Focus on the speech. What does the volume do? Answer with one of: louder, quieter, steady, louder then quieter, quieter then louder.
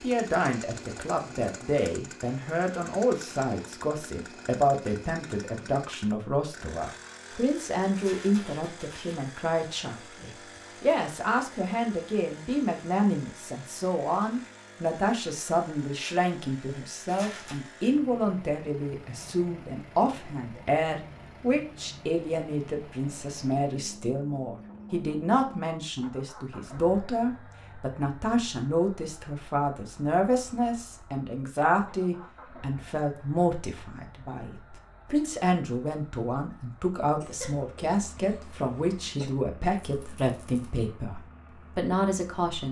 steady.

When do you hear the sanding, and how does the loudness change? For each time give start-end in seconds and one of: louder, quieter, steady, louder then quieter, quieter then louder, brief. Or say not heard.
not heard.